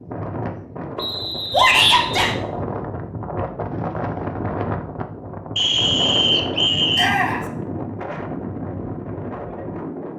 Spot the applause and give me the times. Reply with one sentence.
You can't hear the applause here.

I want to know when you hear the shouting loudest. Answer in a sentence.
The loudest moment of the shouting is at 2 seconds.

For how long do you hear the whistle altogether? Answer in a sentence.
The whistle can be heard for 3 seconds in total.